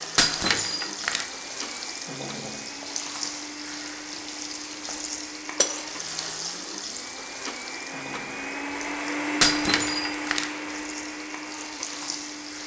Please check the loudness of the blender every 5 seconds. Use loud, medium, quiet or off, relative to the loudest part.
medium, loud, loud.